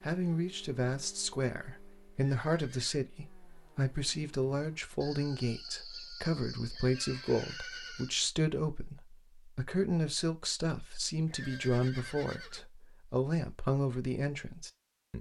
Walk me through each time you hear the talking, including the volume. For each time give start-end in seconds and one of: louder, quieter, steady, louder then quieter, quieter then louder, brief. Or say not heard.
0.0-15.1 steady.